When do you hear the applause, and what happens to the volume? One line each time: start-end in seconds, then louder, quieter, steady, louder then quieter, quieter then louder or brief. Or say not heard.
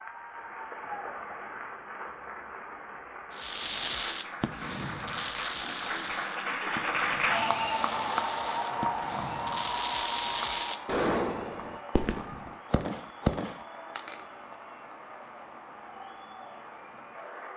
0.0-17.5 louder then quieter.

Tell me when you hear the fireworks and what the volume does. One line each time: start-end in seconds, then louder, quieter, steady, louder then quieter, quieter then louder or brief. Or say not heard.
3.4-14.2 quieter then louder.